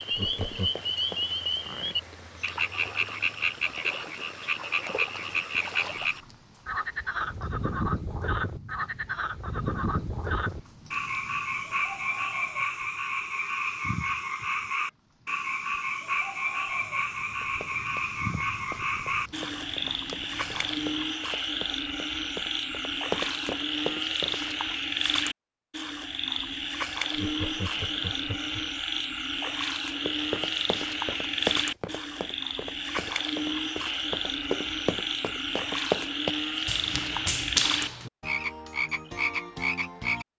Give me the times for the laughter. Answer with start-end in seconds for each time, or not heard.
0.1-0.8, 27.1-28.6.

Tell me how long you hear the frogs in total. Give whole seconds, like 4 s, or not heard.
40 s.